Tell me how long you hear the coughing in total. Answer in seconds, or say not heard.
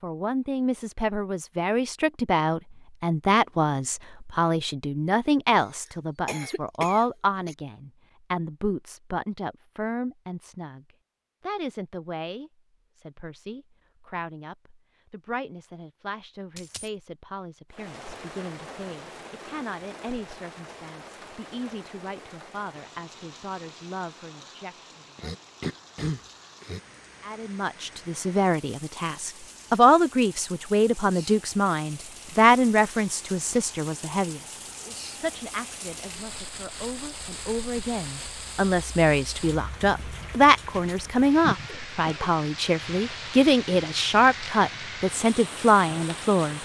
4 s.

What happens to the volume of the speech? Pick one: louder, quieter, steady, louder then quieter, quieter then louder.
quieter then louder.